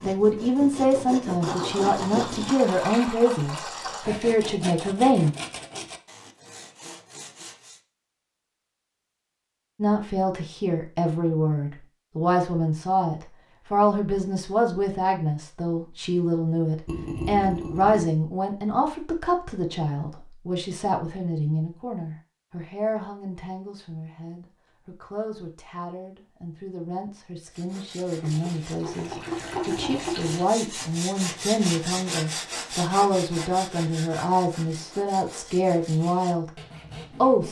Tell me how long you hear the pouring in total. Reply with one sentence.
You can hear the pouring for 6 seconds altogether.